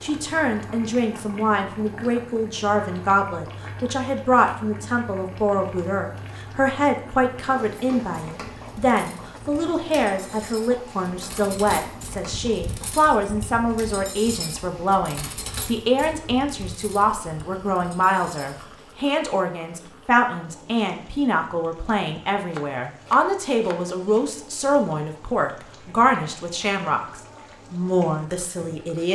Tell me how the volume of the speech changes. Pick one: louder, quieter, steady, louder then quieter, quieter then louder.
steady.